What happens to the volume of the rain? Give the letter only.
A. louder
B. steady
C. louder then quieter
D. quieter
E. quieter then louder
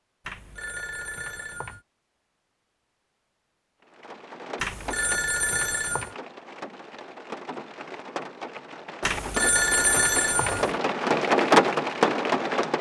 A.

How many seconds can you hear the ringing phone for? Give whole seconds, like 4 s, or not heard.
5 s.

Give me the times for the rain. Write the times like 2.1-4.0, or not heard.
3.8-12.7.